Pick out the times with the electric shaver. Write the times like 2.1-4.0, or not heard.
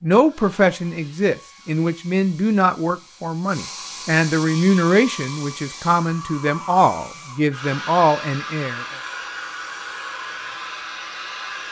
not heard.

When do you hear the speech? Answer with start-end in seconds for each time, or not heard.
0.0-8.8.